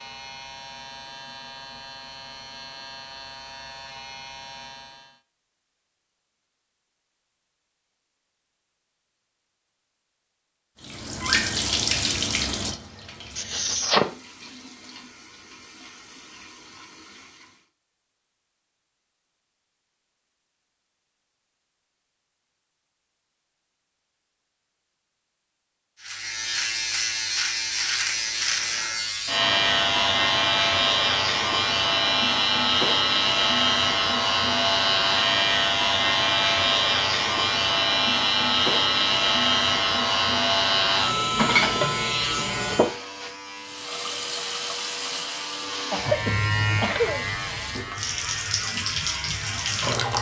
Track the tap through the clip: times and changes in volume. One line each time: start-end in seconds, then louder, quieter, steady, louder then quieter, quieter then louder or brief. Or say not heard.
10.8-17.7 quieter
43.5-50.1 quieter then louder.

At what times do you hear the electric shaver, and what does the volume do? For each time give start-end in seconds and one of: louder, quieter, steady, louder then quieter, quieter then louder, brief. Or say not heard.
0.0-5.2 steady
26.0-50.1 quieter.